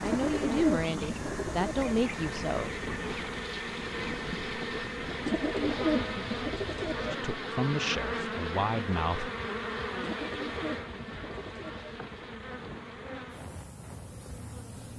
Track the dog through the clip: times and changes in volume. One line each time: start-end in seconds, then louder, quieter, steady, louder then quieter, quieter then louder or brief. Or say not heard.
not heard.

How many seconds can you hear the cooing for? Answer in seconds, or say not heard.
6 s.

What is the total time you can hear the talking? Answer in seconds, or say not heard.
5 s.